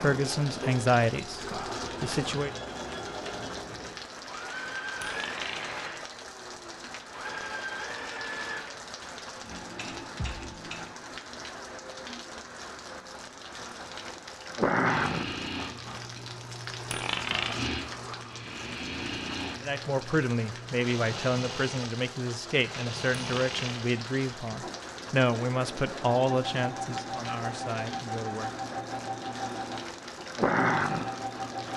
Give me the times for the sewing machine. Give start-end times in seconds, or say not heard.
0.0-10.9, 14.8-31.7.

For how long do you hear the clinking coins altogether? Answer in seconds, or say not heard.
2 s.